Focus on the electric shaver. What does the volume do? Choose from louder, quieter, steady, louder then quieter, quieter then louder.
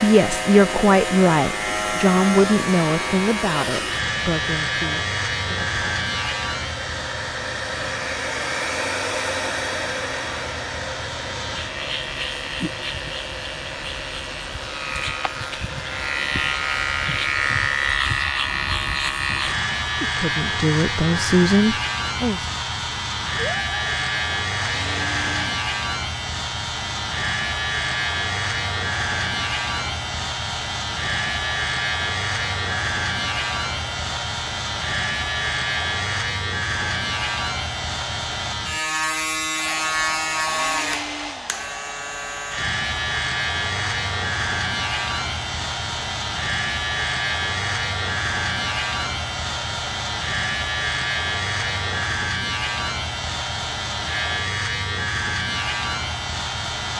steady.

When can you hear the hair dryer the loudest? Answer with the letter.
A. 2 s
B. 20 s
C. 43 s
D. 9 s
D.